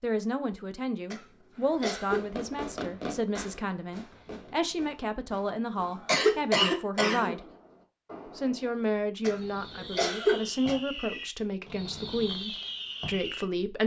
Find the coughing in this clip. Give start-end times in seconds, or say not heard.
1.1-2.2, 5.8-7.4, 9.2-10.8.